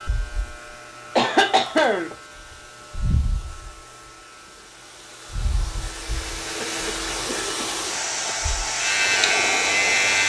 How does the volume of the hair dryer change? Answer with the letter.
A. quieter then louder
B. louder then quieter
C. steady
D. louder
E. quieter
D.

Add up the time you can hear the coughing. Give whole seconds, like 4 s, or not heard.
3 s.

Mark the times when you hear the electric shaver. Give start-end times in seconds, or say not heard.
0.1-4.1, 5.1-10.2.